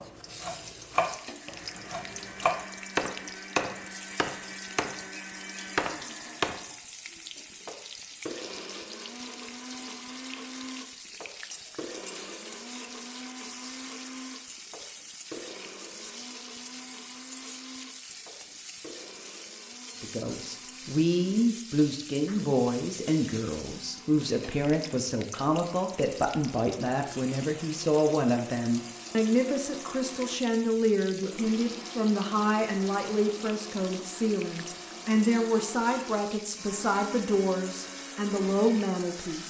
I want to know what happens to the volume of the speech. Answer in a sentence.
The loudness of the speech stays about the same.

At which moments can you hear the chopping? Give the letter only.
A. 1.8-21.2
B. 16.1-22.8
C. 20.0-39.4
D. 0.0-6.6
D.